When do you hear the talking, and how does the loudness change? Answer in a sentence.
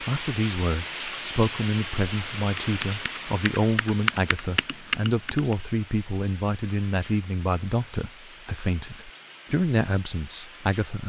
The talking can be heard from 0.0 to 11.0 s, at a steady volume.